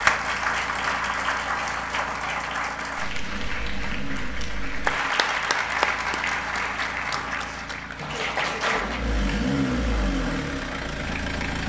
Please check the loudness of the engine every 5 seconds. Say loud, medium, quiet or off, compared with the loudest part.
medium, loud, loud.